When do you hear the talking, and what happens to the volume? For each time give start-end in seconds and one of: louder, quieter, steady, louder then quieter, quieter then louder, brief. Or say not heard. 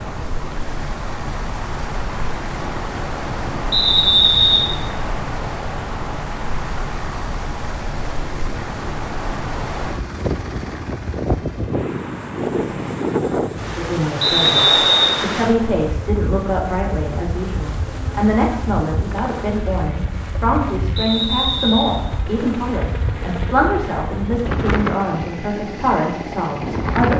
13.7-27.1 steady.